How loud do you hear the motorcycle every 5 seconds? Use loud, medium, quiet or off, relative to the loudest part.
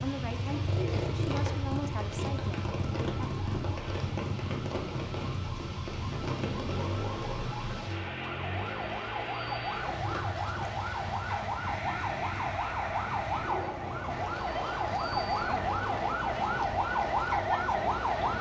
loud, loud, medium, medium.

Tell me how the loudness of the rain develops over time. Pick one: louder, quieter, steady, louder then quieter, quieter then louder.
steady.